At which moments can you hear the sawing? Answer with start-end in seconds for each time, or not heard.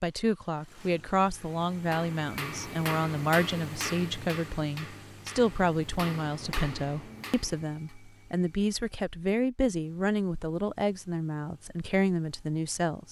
not heard.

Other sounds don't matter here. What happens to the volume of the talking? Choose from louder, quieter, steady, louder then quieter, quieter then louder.
steady.